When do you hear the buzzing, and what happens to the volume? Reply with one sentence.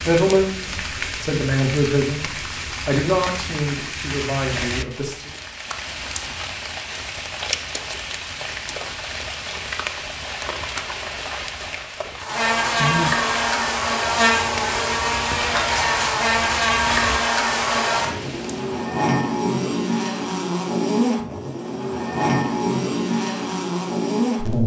The buzzing can be heard from 12.2 to 24.6 s, at a steady volume.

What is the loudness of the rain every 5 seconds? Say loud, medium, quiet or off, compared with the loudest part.
loud, loud, loud, loud, off.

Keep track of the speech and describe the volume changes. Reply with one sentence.
The loudness of the speech goes up, then down.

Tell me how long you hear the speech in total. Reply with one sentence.
The speech can be heard for 5 seconds in total.